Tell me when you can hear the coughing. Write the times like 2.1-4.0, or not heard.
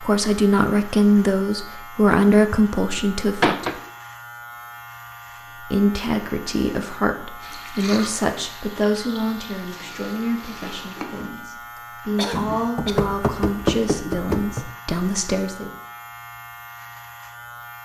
12.2-13.2.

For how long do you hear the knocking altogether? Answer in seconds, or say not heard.
3 s.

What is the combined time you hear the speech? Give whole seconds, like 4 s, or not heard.
14 s.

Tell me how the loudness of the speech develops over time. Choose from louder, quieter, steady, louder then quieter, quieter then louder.
quieter.